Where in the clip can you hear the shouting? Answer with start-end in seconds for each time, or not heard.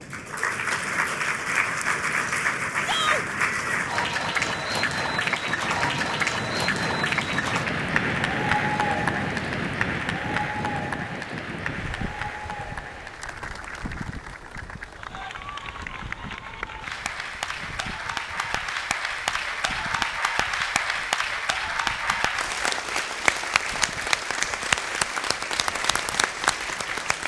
2.8-3.2.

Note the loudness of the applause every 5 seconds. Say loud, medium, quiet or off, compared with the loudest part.
loud, loud, medium, medium, loud, loud.